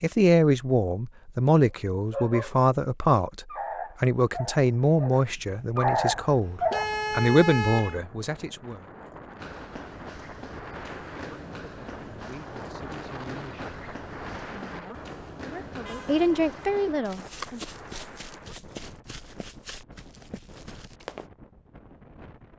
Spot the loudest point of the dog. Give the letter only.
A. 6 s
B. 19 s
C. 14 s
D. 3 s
A.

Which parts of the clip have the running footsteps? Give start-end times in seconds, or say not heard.
9.3-21.3.